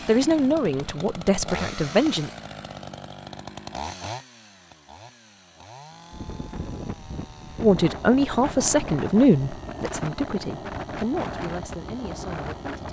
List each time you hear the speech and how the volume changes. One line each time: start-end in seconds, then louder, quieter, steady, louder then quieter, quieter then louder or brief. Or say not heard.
0.1-2.3 brief
7.5-12.8 quieter.